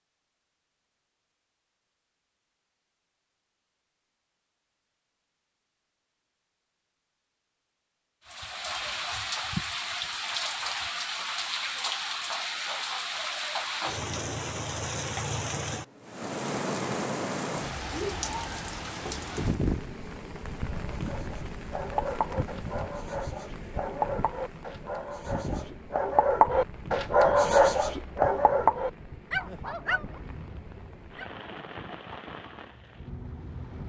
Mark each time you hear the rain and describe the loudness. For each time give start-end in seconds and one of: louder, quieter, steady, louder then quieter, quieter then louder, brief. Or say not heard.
8.2-33.8 quieter.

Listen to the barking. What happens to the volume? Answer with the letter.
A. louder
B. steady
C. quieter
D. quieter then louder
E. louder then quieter
E.